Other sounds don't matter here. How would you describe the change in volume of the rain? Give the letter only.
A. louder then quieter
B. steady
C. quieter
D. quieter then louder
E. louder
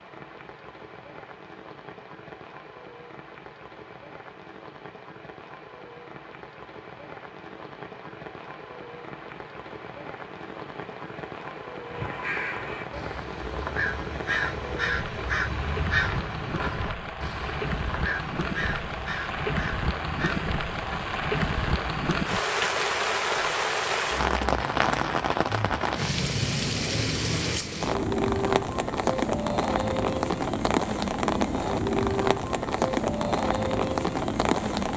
E.